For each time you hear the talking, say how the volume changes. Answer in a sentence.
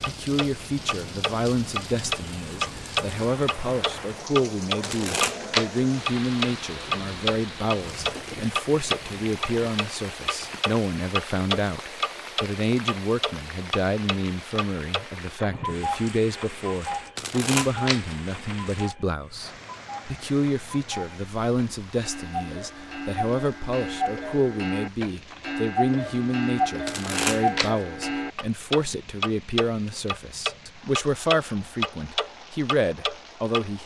You can hear the talking from 0.0 to 33.8 s, at a steady volume.